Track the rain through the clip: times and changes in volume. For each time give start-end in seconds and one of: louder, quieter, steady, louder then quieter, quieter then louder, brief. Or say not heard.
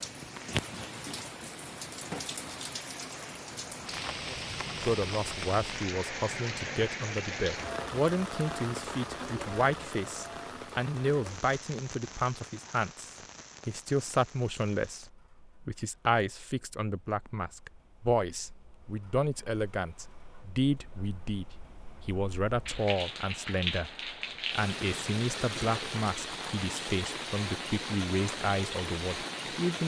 0.0-29.8 quieter then louder.